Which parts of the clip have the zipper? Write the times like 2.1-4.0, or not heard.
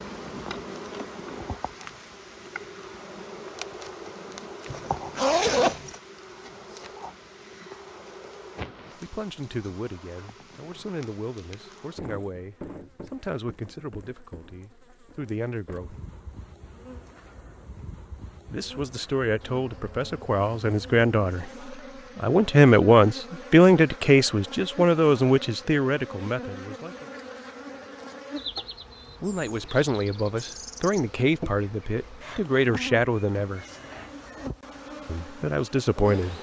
4.7-6.0.